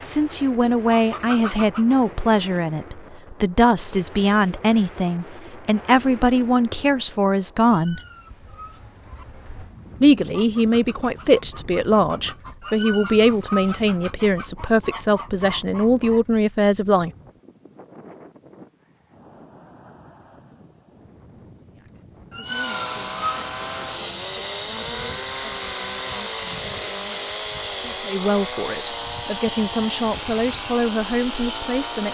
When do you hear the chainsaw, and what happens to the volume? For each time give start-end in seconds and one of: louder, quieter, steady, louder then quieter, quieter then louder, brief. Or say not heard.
22.4-32.0 steady.